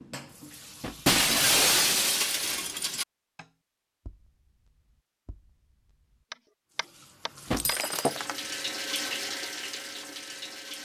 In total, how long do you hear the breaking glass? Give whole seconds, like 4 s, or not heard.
3 s.